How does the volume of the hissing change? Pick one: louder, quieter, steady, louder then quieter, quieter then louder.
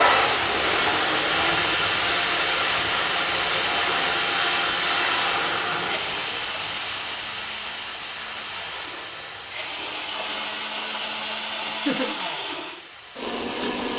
quieter.